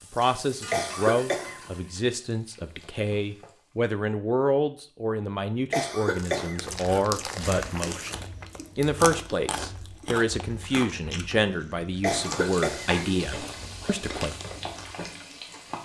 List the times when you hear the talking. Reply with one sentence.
The talking can be heard from 0.1 to 14.3 s.